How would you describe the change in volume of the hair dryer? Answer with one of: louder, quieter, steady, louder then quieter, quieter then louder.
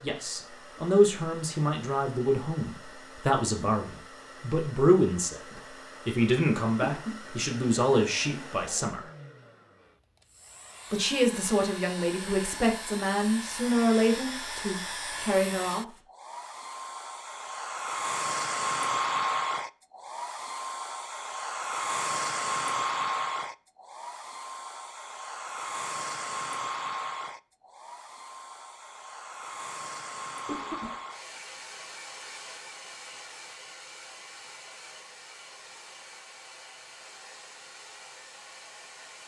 louder then quieter.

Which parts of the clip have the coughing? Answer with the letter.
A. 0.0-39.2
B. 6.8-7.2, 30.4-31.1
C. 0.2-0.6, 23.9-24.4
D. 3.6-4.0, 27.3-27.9
B.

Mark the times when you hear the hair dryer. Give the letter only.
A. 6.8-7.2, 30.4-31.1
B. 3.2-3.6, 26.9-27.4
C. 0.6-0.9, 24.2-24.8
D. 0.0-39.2
D.